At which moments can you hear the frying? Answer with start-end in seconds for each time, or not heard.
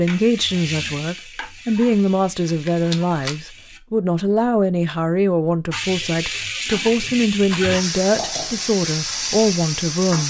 0.0-3.8, 5.7-10.2.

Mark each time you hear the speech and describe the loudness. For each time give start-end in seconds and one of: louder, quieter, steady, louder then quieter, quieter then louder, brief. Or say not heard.
0.0-10.2 steady.